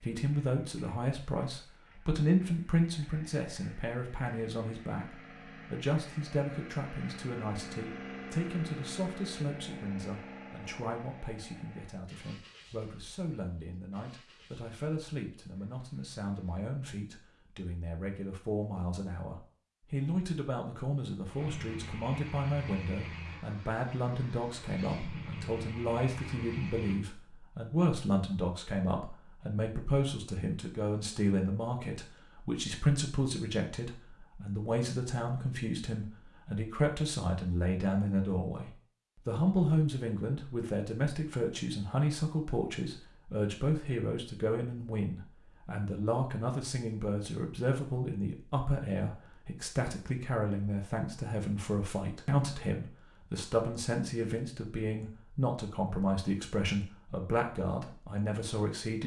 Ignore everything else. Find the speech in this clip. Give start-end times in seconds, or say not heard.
0.0-59.0.